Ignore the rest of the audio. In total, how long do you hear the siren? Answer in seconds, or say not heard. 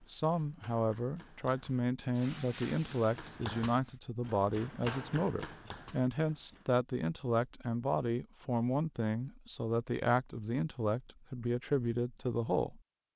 not heard.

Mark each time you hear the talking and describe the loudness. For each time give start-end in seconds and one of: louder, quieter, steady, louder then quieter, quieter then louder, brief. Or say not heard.
0.1-12.8 steady.